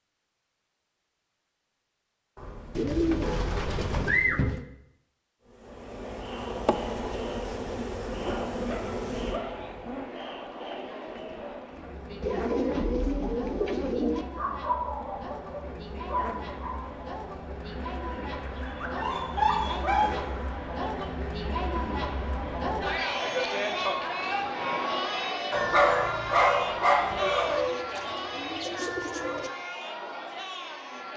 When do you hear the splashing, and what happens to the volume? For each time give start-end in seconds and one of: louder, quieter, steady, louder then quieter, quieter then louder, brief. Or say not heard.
not heard.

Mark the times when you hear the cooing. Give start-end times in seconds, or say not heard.
2.8-4.7, 12.2-14.2, 27.4-29.5.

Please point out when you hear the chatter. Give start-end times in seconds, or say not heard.
5.6-31.1.